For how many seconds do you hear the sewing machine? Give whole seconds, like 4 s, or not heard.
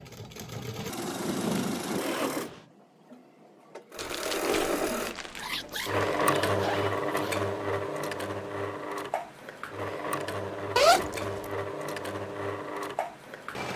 14 s.